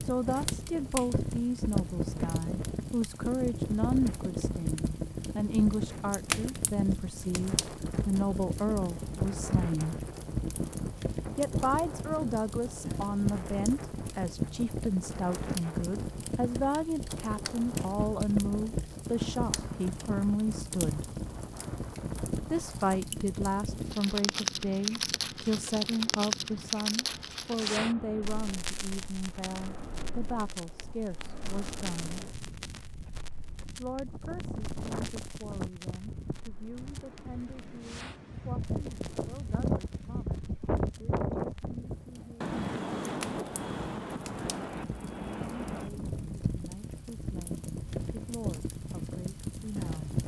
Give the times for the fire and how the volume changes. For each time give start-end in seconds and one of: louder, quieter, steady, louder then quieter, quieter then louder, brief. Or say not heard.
0.0-50.2 quieter then louder.